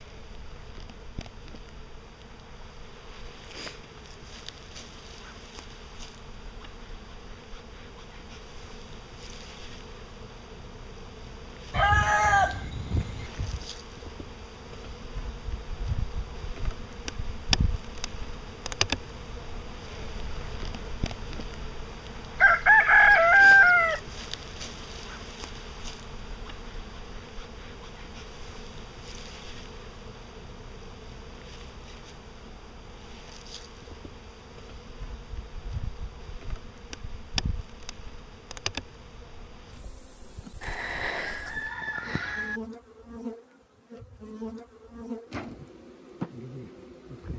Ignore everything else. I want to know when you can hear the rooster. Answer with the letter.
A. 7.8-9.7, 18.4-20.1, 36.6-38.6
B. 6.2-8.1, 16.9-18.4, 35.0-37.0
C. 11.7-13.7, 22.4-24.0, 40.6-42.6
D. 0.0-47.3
C.